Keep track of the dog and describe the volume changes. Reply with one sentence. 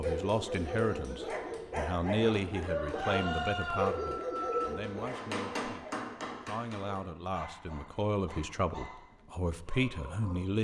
The loudness of the dog goes down.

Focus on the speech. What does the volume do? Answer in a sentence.
The volume of the speech goes down, then up.